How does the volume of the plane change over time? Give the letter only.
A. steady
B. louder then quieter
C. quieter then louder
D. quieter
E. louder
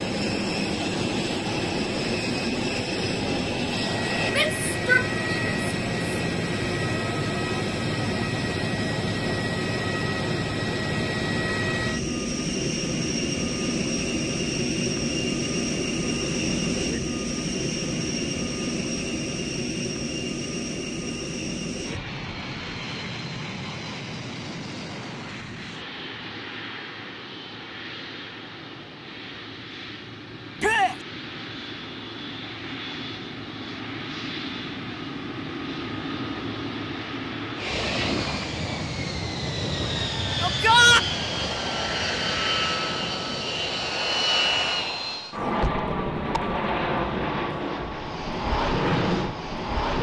C.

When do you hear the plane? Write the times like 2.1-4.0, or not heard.
0.0-49.9.